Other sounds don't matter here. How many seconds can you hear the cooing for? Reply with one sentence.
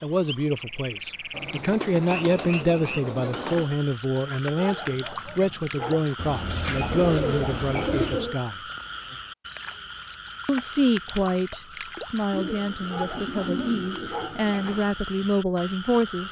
You can hear the cooing for 7 seconds altogether.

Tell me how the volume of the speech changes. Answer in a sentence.
The loudness of the speech stays about the same.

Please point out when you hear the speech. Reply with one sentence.
The speech can be heard from 0.0 to 8.6 s and from 10.4 to 16.2 s.